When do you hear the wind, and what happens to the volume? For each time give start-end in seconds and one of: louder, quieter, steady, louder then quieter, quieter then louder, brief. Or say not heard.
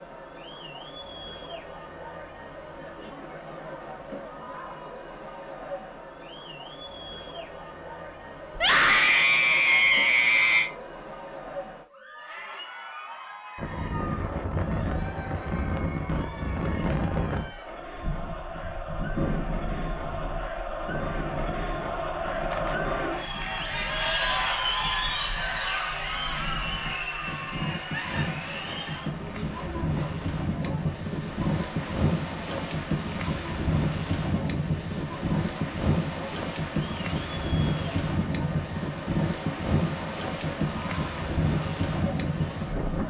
13.6-43.0 quieter then louder.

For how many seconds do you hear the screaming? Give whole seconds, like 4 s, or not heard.
2 s.